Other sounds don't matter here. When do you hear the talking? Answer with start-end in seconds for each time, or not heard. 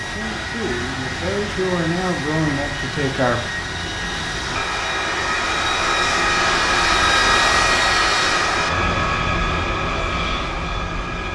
0.0-3.4.